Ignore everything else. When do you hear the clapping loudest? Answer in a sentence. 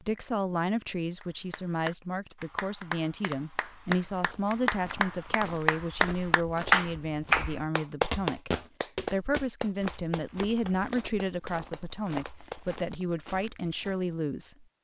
The loudest moment of the clapping is at 7 seconds.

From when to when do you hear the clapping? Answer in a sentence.
The clapping can be heard from 1.2 to 12.8 s.